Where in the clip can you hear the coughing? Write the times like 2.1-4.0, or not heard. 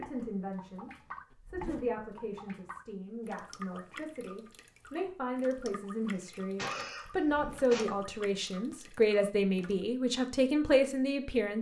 6.1-7.8.